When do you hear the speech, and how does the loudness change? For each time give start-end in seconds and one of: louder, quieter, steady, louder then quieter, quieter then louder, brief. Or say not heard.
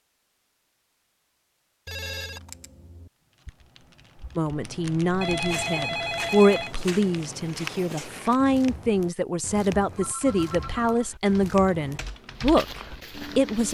4.3-13.7 steady.